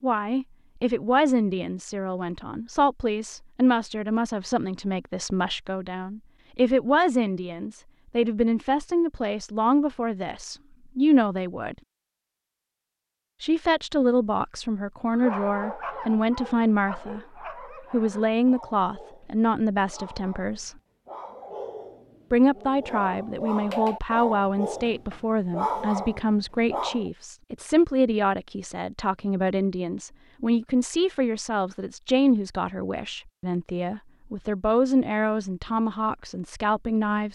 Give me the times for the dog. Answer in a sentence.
You can hear the dog from 15.1 to 27.1 s.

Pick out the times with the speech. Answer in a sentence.
The speech can be heard from 0.0 to 11.8 s, from 13.4 to 17.2 s, from 17.9 to 20.7 s and from 22.3 to 37.3 s.